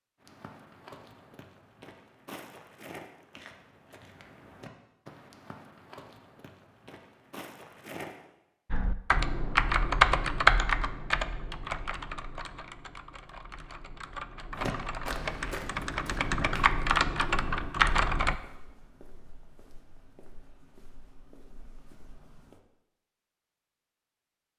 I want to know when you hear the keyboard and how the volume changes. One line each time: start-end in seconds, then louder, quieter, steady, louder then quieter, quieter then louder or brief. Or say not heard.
8.7-18.4 quieter then louder.